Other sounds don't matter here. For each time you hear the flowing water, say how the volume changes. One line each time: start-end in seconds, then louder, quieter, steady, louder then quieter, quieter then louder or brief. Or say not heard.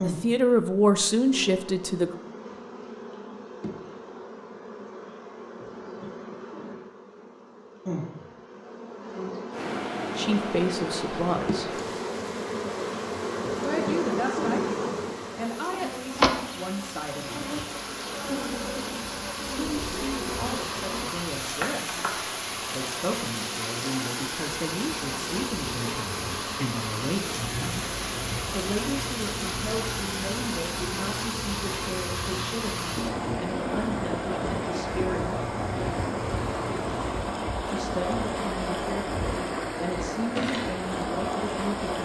9.5-42.0 louder.